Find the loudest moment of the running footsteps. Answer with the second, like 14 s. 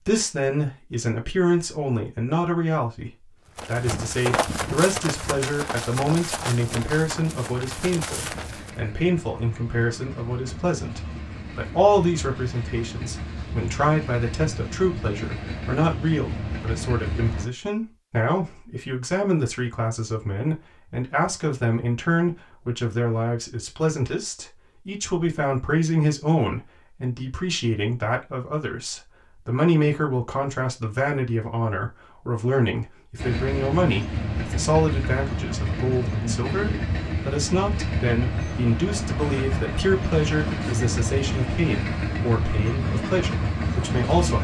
4 s.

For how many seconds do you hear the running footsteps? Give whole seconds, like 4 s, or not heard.
5 s.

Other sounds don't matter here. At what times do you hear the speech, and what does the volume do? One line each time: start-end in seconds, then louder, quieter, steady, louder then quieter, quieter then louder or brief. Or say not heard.
0.1-44.3 steady.